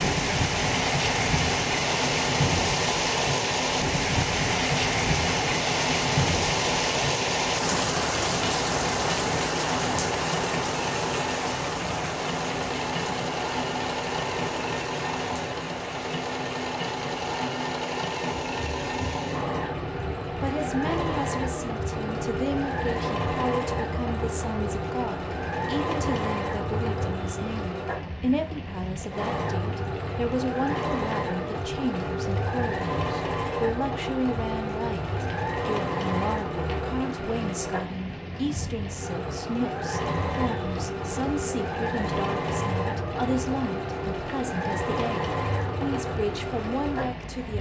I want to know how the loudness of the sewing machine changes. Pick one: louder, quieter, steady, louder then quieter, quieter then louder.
steady.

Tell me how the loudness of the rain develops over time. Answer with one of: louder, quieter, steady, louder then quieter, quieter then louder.
quieter.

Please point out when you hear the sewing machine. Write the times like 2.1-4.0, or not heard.
0.1-47.3.